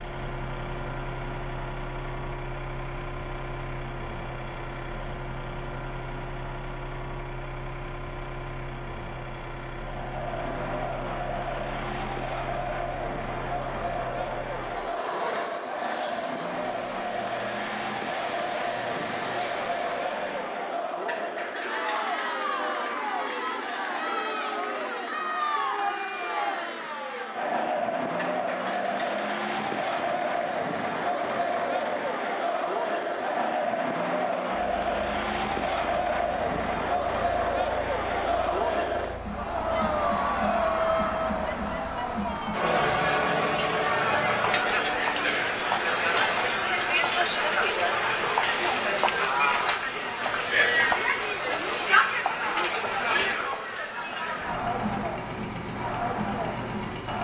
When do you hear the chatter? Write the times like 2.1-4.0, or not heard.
9.8-57.1.